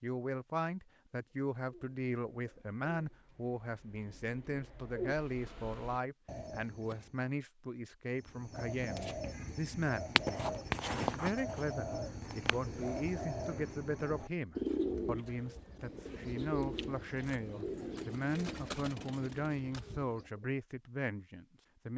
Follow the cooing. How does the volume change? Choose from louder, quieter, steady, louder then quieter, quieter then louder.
louder then quieter.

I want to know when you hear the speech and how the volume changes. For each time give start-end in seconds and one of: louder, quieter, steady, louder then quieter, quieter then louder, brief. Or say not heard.
0.0-21.9 steady.